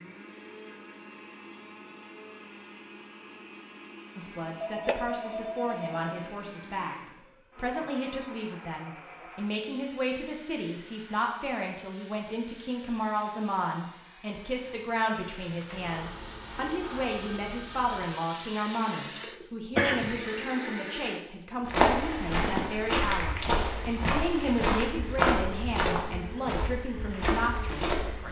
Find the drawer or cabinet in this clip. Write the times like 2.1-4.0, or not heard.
not heard.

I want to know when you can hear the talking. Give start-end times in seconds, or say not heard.
4.2-7.0, 7.5-28.2.